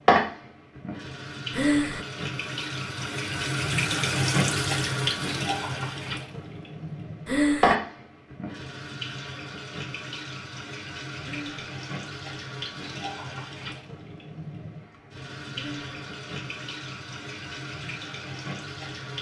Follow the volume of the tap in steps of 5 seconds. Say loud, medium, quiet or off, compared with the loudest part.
loud, loud, medium, medium.